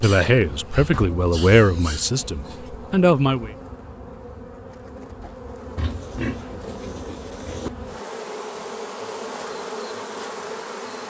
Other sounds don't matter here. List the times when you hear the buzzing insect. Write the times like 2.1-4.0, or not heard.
0.2-11.0.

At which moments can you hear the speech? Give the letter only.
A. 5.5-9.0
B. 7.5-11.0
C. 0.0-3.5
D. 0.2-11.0
C.